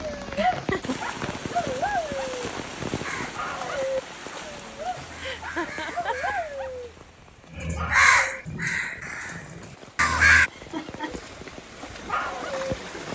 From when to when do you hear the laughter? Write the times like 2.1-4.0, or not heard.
0.2-0.9, 5.2-6.3, 10.5-11.2.